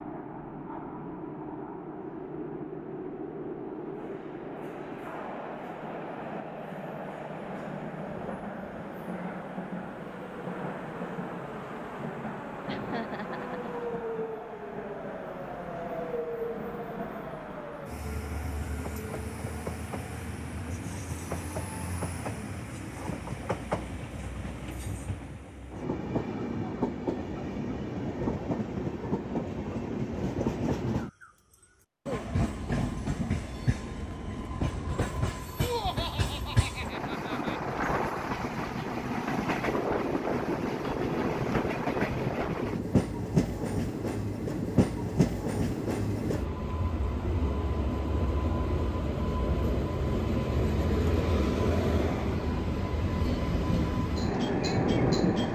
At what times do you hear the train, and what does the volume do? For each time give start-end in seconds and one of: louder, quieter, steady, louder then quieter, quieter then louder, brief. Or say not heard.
0.0-55.4 louder.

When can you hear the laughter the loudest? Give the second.
36 s.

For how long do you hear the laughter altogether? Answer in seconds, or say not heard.
3 s.